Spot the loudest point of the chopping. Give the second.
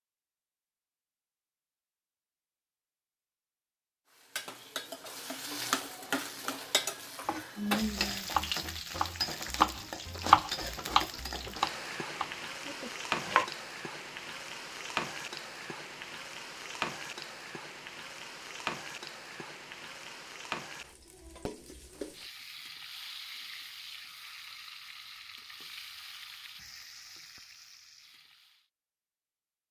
10 s.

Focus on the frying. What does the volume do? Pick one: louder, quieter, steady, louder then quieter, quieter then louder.
quieter.